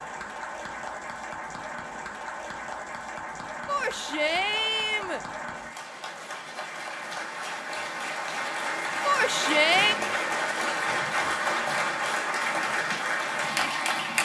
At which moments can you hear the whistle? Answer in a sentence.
You can't hear the whistle here.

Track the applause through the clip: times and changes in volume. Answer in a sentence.
You can hear the applause from 0.0 to 14.2 s, getting louder.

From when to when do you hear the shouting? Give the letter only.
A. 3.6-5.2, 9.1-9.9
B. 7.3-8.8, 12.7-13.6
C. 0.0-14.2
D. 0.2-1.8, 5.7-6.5
A.